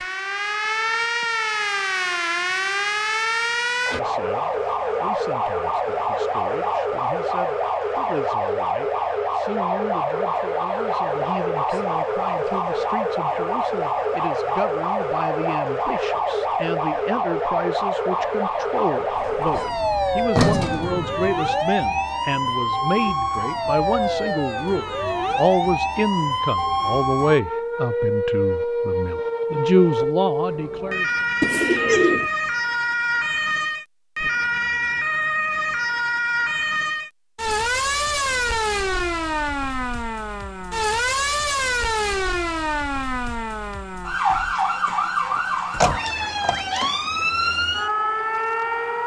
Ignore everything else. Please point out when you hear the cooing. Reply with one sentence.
The cooing can be heard from 31.4 to 32.3 s.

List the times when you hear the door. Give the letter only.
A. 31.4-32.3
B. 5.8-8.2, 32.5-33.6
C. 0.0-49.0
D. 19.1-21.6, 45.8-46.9
D.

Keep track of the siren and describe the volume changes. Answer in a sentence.
The loudness of the siren stays about the same.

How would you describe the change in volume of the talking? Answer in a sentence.
The volume of the talking goes up.